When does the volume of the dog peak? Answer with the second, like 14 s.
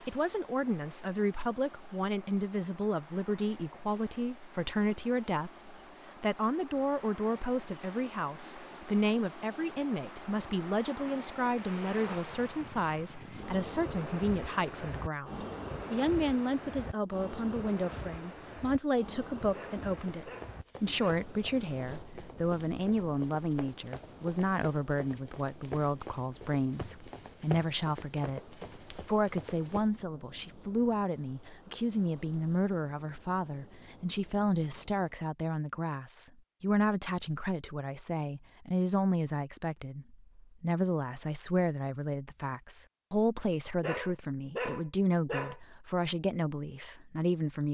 45 s.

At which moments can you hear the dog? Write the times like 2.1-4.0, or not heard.
19.5-21.1, 43.8-45.6.